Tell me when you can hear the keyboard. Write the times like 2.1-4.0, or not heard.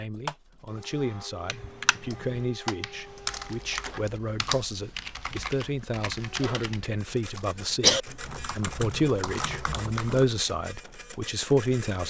1.4-10.4.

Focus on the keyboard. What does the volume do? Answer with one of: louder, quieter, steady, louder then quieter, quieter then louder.
louder then quieter.